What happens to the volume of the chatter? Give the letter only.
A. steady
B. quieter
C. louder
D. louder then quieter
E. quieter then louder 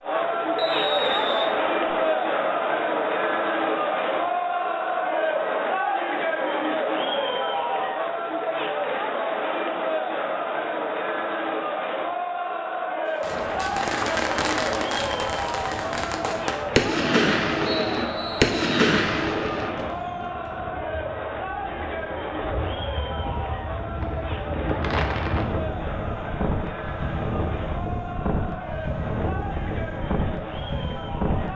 B.